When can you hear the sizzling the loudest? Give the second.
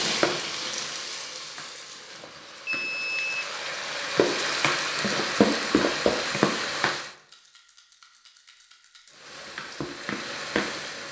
6 s.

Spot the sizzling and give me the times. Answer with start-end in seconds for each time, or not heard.
0.0-7.2, 9.1-11.0.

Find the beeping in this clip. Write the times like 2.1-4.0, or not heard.
2.2-3.5.